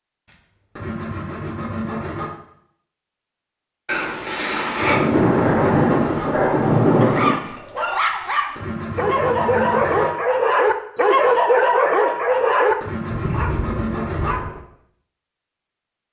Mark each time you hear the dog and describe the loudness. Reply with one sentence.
You can hear the dog from 5.3 to 14.6 s, getting louder then quieter.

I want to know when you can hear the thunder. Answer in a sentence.
You can hear the thunder from 3.9 to 7.3 s.